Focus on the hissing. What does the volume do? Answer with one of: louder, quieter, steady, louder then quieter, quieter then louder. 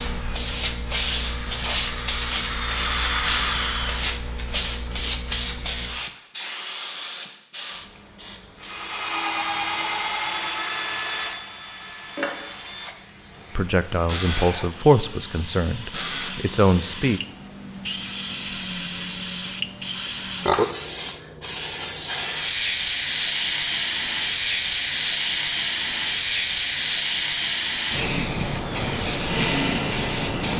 quieter then louder.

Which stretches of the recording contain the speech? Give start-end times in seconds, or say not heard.
13.6-17.2.